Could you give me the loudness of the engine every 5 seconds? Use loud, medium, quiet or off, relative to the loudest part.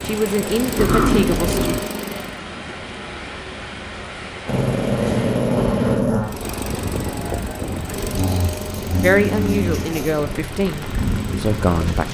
loud, loud, medium.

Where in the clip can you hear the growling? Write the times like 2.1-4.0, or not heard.
0.8-1.9, 4.5-6.3, 8.2-10.2.